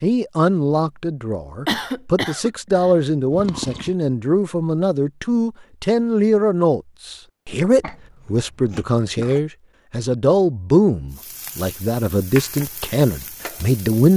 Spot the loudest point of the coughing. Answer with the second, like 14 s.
2 s.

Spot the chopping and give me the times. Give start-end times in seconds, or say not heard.
not heard.